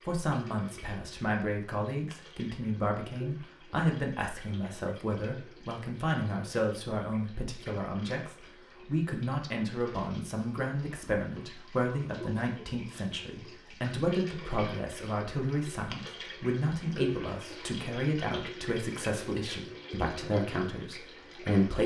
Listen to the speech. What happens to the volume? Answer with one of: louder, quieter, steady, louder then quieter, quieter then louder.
steady.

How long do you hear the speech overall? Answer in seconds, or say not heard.
22 s.